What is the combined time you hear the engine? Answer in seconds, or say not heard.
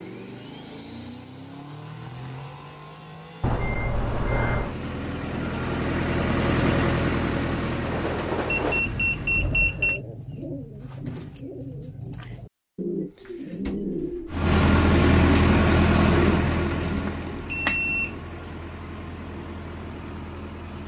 16 s.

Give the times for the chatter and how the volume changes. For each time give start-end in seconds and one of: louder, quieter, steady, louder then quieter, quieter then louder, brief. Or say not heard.
not heard.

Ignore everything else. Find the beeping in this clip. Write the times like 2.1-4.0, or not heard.
3.4-4.8, 8.5-10.0, 17.1-18.2.